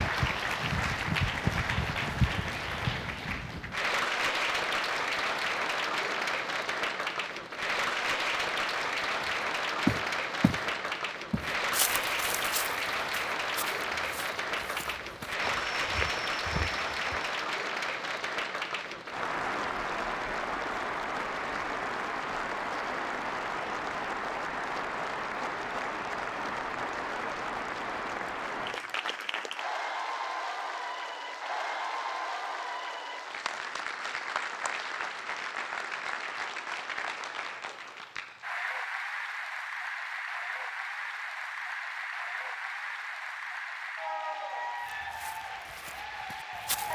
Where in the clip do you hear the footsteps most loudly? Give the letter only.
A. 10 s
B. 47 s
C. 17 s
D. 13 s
A.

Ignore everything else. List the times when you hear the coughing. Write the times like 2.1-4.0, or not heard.
not heard.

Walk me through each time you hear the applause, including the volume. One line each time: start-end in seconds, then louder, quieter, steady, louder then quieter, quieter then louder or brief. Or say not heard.
0.0-46.9 quieter.